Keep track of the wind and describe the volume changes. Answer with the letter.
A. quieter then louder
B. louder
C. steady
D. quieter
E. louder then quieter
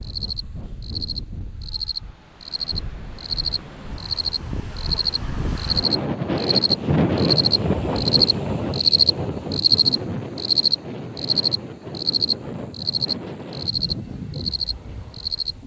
E.